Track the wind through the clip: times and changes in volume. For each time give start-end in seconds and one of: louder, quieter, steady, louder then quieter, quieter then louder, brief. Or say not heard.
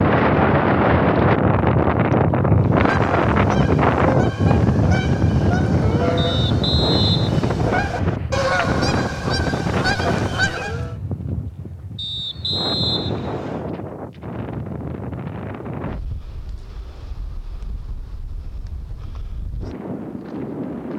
0.0-20.9 quieter.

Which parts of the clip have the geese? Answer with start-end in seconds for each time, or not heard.
2.5-10.9.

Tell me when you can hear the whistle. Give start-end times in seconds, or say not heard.
6.2-8.2, 11.9-13.7.